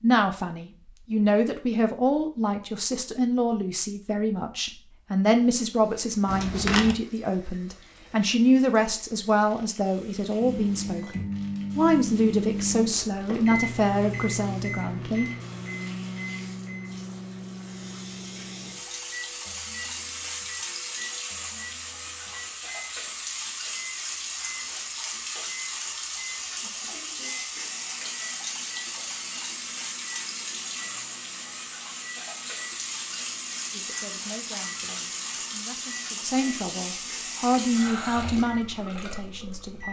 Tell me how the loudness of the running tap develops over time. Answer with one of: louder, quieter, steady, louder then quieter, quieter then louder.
louder.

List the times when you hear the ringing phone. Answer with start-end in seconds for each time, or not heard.
6.2-7.0.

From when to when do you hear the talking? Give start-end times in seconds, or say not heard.
0.0-15.3, 33.7-39.8.